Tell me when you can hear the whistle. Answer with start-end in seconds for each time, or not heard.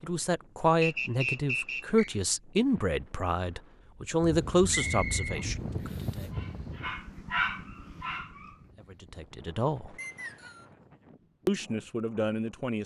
0.8-2.1, 4.7-5.5, 9.9-10.7.